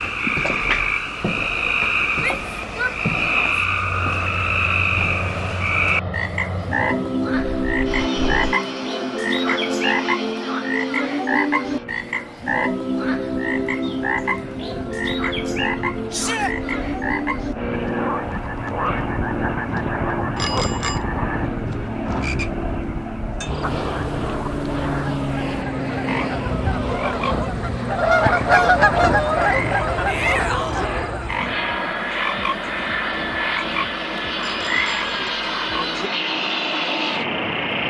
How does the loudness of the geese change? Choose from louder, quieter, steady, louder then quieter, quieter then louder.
louder then quieter.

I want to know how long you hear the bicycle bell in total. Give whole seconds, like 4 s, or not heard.
3 s.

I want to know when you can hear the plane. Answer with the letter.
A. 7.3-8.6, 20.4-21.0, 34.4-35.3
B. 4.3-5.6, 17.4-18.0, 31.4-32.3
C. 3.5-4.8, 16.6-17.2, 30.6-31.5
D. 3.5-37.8
D.